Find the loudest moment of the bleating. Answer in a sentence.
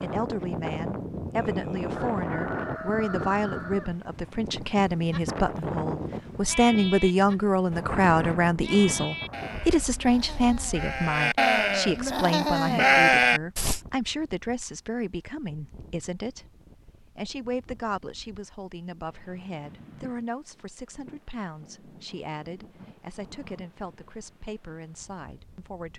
The loudest moment of the bleating is at 13 seconds.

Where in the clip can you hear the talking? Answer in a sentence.
The talking can be heard from 0.0 to 16.4 s and from 17.1 to 25.9 s.